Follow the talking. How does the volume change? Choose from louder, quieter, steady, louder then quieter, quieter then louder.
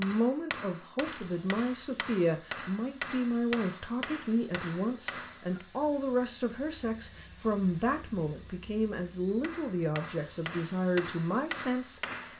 steady.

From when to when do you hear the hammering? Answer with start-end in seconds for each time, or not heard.
0.0-5.7, 9.2-12.3.